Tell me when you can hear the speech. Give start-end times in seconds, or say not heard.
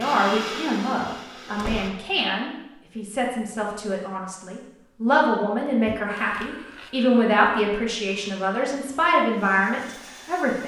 0.0-10.6.